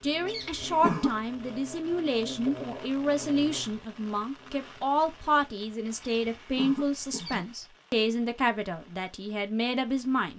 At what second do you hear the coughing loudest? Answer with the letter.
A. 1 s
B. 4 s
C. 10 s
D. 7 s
A.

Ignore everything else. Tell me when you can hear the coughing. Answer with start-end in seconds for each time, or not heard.
0.2-1.1, 6.0-7.5.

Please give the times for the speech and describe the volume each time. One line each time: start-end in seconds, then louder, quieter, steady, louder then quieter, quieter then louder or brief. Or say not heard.
0.0-10.3 steady.